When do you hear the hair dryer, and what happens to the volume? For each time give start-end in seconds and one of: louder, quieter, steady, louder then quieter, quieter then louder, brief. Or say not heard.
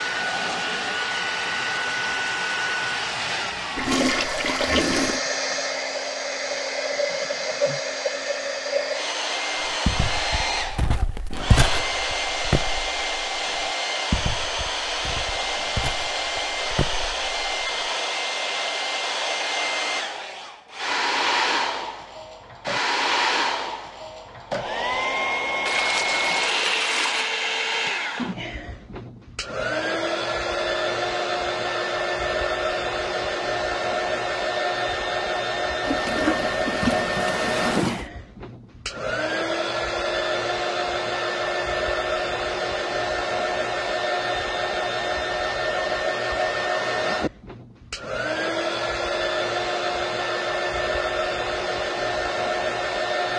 0.0-53.3 steady.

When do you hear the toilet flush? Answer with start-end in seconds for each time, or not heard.
3.8-5.2, 25.6-27.3, 35.8-38.1.